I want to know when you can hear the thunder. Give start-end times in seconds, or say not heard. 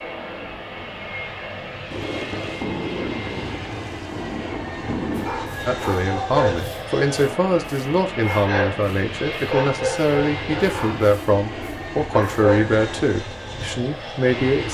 1.9-5.3.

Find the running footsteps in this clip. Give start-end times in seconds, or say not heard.
not heard.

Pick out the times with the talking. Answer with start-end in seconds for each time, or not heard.
5.7-14.6.